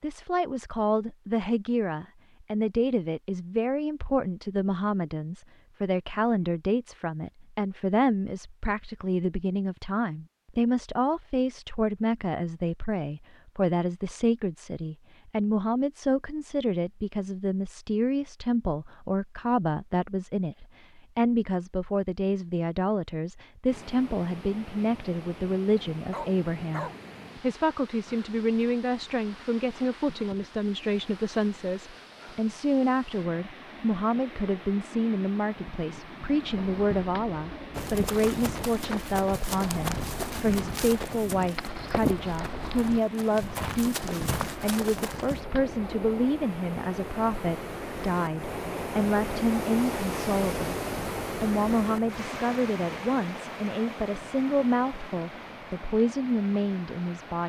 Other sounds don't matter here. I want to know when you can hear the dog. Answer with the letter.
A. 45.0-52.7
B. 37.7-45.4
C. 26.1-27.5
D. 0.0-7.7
C.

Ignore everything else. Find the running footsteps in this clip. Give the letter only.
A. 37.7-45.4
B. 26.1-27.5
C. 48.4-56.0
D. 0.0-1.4
A.